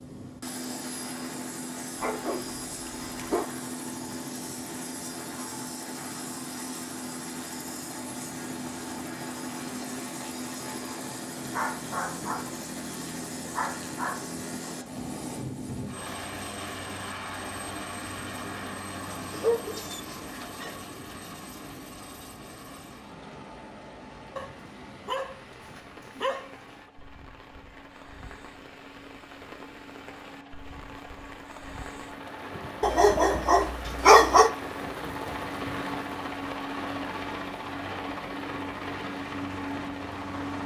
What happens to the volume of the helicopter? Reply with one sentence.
The loudness of the helicopter goes down, then up.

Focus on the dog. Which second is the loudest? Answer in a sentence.
The volume of the dog peaks at 34 seconds.